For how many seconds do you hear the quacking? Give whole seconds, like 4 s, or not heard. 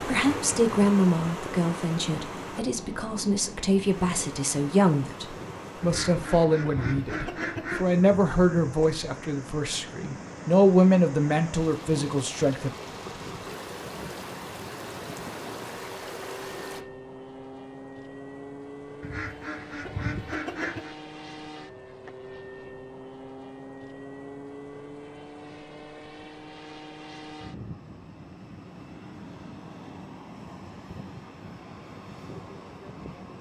4 s.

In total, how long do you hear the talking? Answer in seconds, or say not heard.
13 s.